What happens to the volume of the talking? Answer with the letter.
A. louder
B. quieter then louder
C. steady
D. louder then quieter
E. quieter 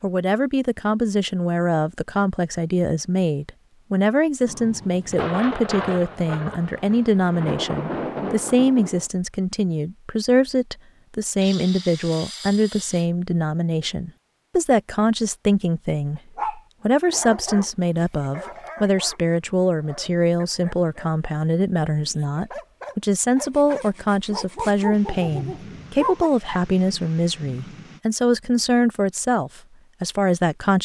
C.